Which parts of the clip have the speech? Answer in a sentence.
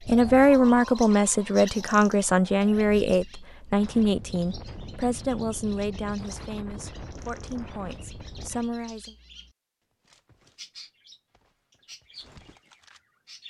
The speech can be heard from 0.0 to 9.2 s.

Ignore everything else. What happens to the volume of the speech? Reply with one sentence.
The loudness of the speech goes down.